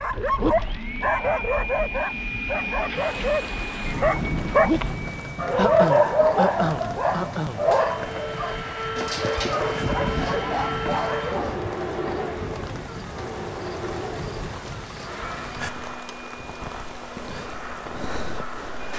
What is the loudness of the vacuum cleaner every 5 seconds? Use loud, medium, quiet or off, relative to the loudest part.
loud, loud, loud, medium.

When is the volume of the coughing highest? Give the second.
6 s.